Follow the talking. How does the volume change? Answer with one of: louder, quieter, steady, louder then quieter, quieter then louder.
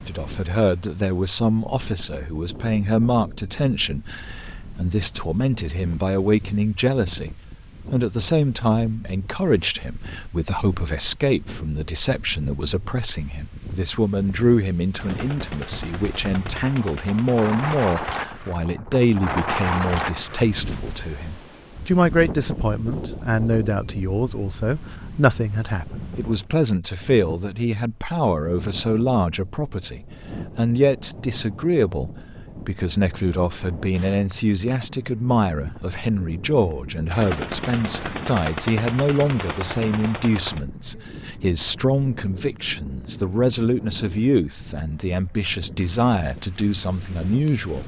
steady.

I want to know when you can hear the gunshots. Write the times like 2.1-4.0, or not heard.
14.9-17.9, 37.1-40.6.